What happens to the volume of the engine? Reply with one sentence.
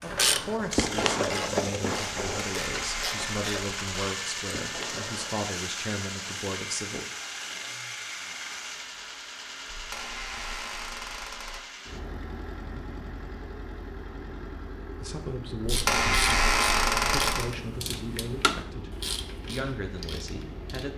The loudness of the engine goes down.